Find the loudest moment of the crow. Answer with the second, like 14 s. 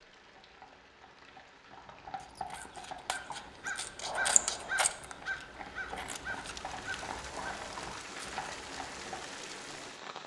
4 s.